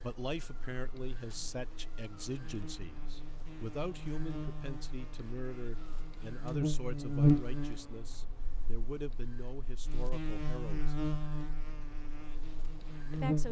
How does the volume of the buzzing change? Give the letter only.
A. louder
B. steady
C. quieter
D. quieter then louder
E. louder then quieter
E.